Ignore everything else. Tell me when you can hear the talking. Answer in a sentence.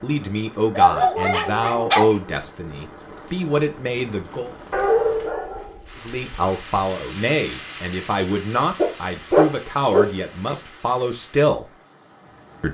You can hear the talking from 0.0 to 4.5 s and from 6.0 to 11.7 s.